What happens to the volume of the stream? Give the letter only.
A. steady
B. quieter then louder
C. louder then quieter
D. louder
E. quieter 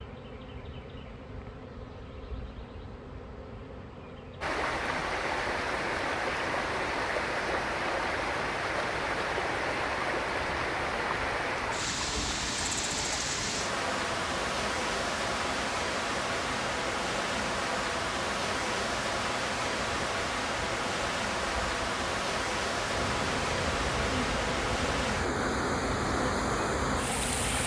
A.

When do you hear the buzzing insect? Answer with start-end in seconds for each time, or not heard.
0.0-27.6.